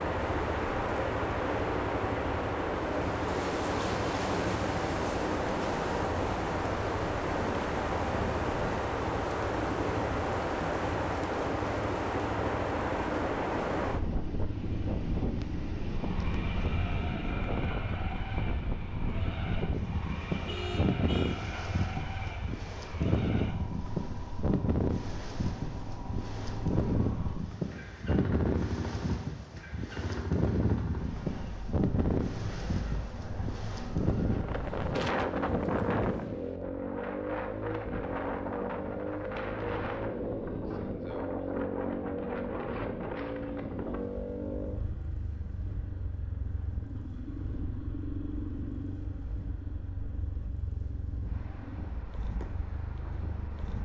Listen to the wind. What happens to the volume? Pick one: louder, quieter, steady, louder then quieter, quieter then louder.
quieter.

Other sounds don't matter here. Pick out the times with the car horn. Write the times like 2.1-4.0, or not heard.
20.4-21.4.